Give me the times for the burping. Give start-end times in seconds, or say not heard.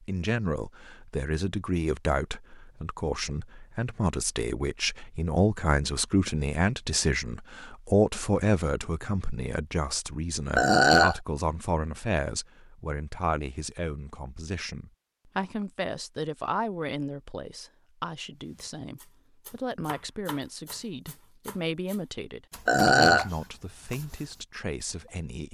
10.6-11.2, 22.6-23.2.